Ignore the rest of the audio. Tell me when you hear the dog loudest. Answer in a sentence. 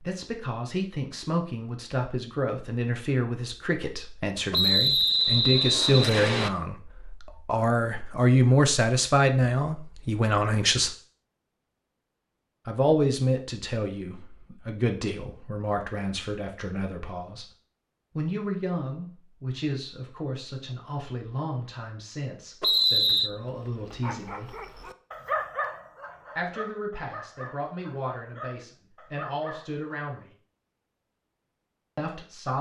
The volume of the dog peaks at 25 seconds.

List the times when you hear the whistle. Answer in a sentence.
You can hear the whistle from 4.5 to 6.5 s and from 22.6 to 23.3 s.